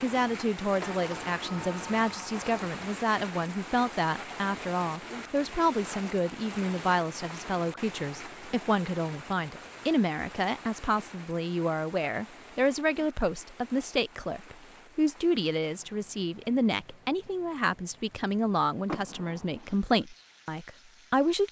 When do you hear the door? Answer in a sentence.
You can hear the door from 0.8 to 2.6 s and from 18.9 to 19.8 s.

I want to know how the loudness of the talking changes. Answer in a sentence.
The loudness of the talking stays about the same.